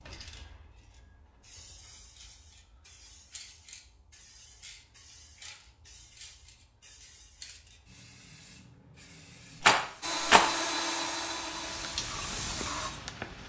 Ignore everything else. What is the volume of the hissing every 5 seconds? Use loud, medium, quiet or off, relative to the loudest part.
quiet, quiet, loud.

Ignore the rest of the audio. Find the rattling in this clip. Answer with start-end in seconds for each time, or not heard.
9.6-10.5.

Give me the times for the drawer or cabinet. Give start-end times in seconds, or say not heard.
not heard.